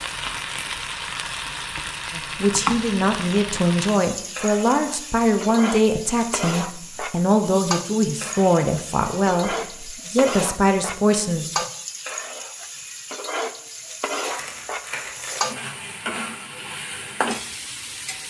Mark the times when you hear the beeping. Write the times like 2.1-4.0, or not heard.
not heard.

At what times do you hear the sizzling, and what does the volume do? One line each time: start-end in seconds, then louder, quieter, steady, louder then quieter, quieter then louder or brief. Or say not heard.
0.0-18.2 steady.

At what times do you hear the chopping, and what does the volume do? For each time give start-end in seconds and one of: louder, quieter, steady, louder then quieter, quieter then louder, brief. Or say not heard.
not heard.